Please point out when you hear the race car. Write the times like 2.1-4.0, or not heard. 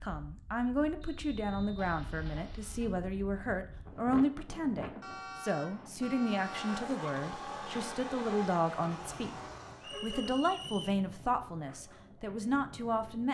6.3-9.9.